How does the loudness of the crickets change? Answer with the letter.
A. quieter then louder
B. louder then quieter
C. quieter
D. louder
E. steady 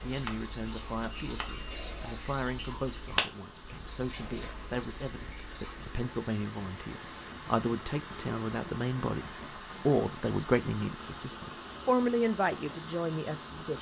C.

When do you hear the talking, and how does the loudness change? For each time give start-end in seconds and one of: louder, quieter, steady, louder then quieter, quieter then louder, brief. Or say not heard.
0.0-13.7 louder.